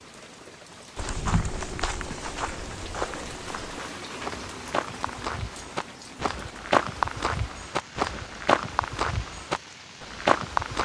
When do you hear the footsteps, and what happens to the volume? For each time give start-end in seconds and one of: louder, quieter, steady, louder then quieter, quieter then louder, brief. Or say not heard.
0.9-10.8 louder.